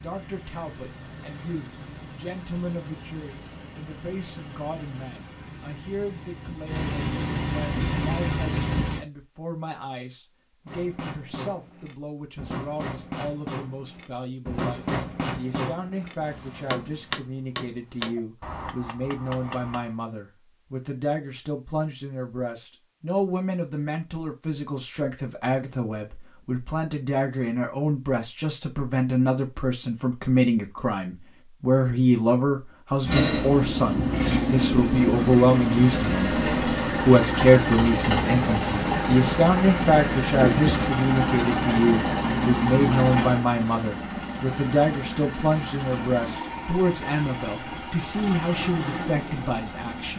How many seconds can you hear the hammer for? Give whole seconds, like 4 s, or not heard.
9 s.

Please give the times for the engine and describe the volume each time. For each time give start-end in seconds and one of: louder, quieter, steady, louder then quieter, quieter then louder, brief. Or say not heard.
0.0-9.1 louder
33.0-50.1 quieter.